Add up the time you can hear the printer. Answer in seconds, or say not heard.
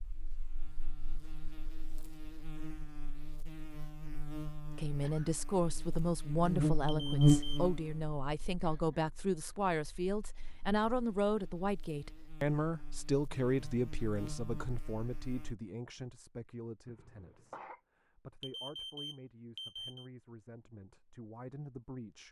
not heard.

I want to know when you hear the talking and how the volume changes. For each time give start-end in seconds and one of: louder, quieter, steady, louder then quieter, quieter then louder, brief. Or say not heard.
4.8-22.2 quieter.